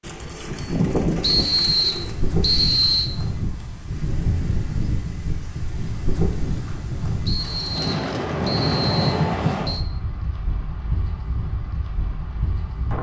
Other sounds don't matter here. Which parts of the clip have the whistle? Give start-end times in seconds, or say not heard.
1.2-3.1, 7.2-9.8.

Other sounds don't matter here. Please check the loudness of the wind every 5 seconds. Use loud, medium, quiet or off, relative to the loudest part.
loud, loud, medium.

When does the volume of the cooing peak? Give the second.
1 s.